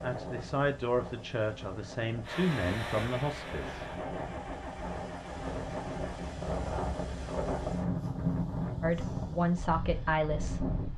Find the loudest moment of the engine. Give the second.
3 s.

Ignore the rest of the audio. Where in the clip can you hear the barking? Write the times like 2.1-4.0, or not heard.
not heard.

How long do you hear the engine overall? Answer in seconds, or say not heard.
4 s.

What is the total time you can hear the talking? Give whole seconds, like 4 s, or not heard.
6 s.